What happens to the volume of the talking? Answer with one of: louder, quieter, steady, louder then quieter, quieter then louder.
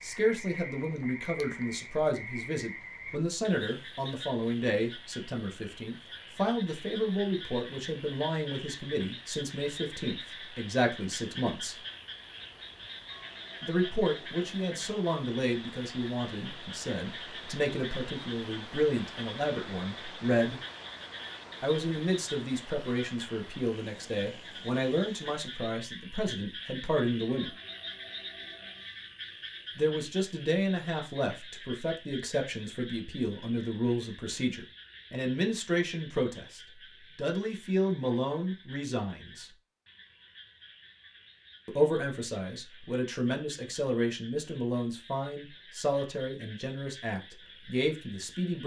steady.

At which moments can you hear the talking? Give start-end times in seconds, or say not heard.
0.0-11.8, 13.6-20.6, 21.6-27.6, 29.8-39.5, 41.6-48.6.